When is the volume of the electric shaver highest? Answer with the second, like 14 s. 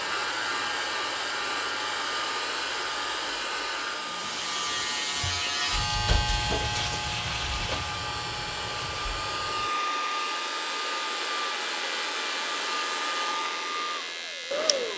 6 s.